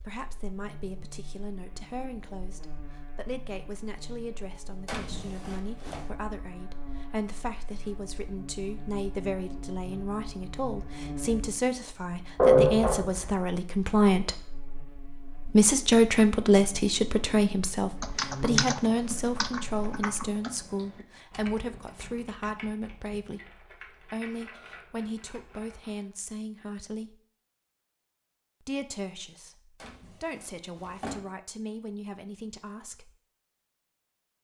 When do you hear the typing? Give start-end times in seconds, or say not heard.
18.0-26.1.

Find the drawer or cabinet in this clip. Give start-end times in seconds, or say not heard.
4.8-6.1, 29.8-31.2.